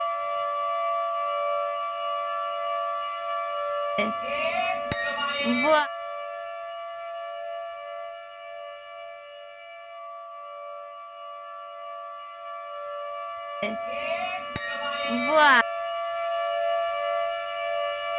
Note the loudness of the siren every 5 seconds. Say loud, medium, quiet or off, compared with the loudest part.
loud, medium, medium, loud.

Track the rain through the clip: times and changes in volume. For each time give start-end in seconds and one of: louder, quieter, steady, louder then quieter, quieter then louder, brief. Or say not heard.
not heard.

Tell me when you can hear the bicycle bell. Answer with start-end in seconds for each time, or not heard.
4.0-5.9, 13.6-15.7.